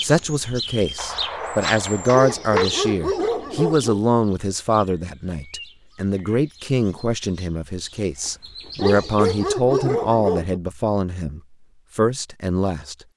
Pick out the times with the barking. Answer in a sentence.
The barking can be heard from 2.1 to 4.0 s and from 8.8 to 10.6 s.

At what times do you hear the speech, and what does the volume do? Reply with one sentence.
You can hear the speech from 0.0 to 12.9 s, at a steady volume.